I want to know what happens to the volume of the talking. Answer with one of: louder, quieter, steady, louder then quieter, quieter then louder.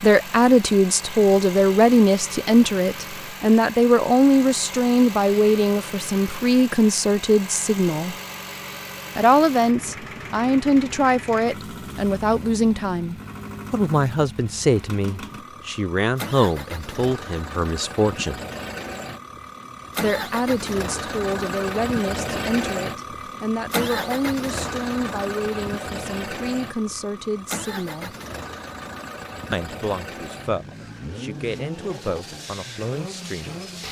quieter.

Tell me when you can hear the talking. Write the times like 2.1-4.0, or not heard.
0.0-8.2, 9.2-18.4, 20.0-28.1, 29.5-33.6.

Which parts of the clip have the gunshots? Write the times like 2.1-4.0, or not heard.
not heard.